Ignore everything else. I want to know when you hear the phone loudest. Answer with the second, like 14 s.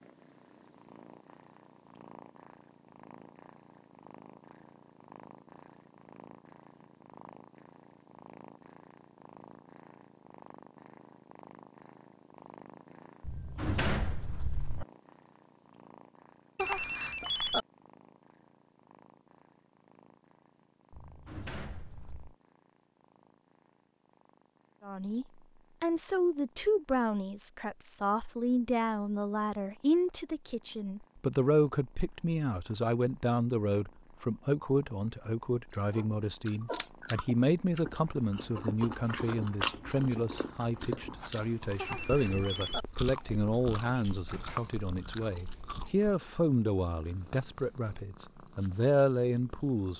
17 s.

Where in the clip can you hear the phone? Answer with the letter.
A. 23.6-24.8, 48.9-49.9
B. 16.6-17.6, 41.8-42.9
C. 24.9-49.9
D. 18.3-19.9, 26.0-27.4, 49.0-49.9
B.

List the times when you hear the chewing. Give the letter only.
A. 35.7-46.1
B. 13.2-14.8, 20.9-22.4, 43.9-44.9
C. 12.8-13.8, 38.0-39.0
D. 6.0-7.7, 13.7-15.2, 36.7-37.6
A.